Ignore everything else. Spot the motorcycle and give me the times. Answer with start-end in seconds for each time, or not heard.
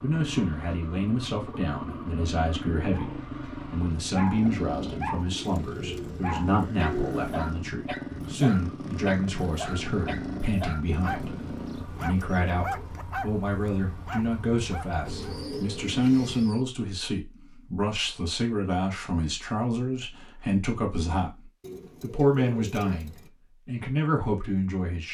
0.0-15.5.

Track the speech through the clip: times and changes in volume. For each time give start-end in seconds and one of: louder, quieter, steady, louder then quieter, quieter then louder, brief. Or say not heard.
0.0-25.0 steady.